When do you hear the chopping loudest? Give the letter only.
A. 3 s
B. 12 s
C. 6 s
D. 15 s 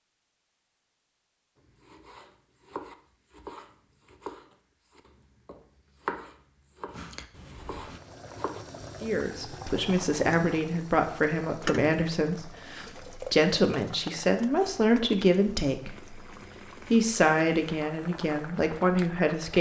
C.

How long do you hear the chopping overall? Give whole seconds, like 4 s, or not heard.
7 s.